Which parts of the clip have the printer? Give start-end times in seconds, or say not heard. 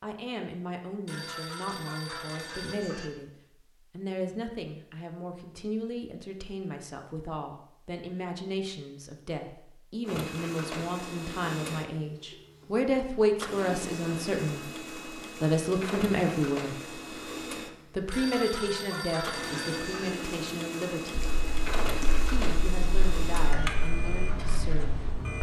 10.0-25.3.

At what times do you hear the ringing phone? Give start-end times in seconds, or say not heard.
1.1-3.1, 18.1-20.1.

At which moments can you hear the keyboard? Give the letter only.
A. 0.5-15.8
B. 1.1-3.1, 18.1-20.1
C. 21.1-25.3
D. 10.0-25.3
C.